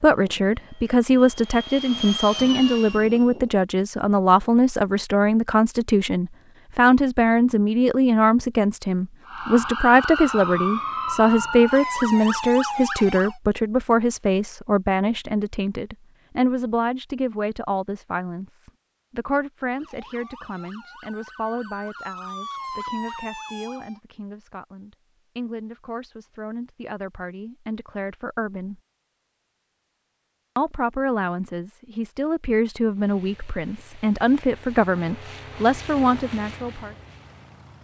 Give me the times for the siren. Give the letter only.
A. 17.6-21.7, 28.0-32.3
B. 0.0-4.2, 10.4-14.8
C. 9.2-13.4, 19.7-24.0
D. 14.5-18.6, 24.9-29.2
C.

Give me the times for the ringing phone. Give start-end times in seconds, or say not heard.
not heard.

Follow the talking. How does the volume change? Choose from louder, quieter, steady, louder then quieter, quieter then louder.
quieter then louder.